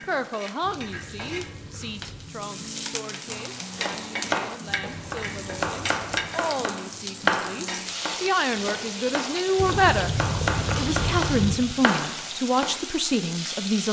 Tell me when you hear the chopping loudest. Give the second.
7 s.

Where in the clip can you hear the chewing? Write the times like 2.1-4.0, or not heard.
0.6-2.2, 4.7-6.3, 9.6-11.6.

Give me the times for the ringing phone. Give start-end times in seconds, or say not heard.
not heard.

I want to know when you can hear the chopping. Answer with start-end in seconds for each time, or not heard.
3.3-12.8.